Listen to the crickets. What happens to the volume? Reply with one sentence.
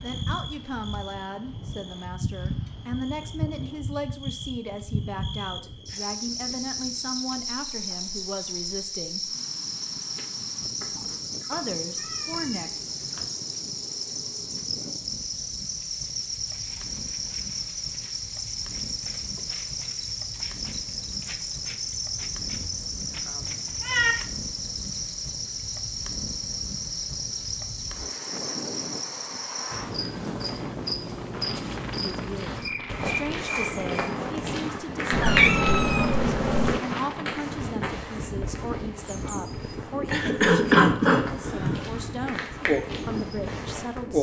The volume of the crickets stays about the same.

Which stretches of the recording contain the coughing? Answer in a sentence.
The coughing can be heard from 40.1 to 41.9 s.